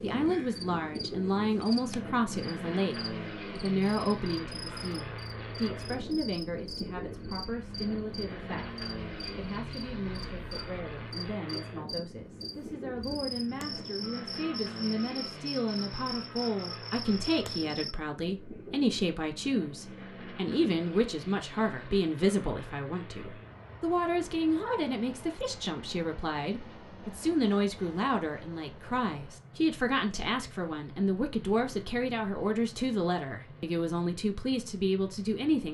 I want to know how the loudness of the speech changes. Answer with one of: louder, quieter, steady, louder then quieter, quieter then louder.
quieter then louder.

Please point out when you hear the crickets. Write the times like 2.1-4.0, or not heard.
0.0-17.9.